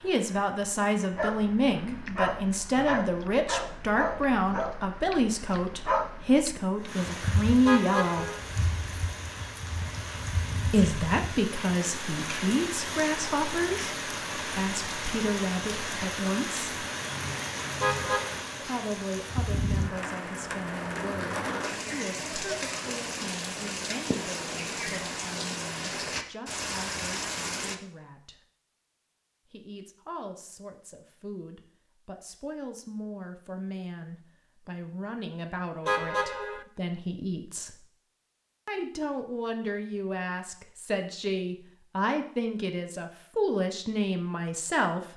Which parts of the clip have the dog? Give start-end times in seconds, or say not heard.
1.1-6.6.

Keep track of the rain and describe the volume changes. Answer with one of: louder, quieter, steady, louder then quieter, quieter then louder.
louder.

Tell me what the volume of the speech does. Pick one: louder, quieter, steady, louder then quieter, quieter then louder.
quieter then louder.